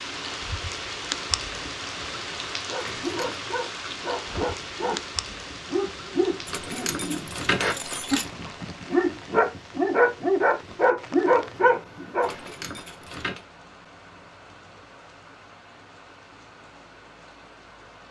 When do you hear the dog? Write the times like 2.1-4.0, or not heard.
2.6-12.5.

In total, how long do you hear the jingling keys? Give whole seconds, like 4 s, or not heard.
4 s.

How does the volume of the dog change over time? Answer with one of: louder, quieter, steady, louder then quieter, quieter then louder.
louder.